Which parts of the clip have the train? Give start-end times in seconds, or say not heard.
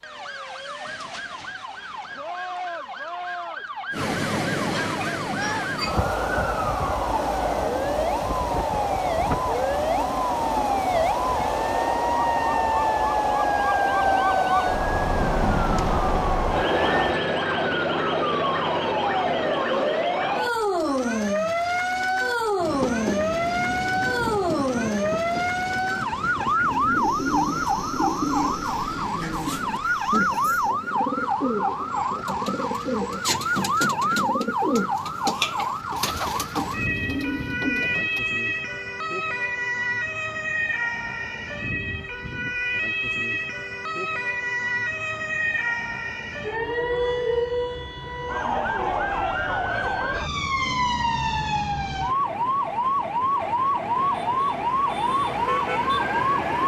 3.9-17.2, 22.6-30.8.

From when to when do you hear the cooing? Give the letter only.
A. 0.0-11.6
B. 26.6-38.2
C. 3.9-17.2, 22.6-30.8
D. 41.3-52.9
B.